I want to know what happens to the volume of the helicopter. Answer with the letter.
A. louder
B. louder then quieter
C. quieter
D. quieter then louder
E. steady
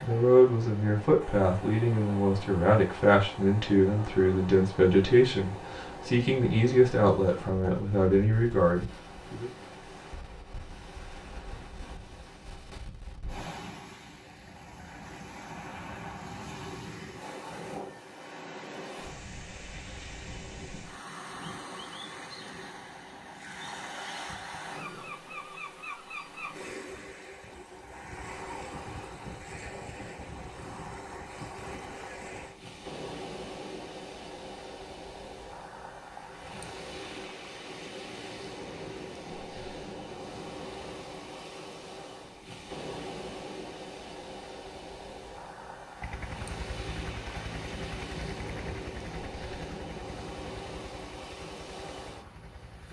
C.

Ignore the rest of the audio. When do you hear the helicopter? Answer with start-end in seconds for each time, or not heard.
46.0-52.8.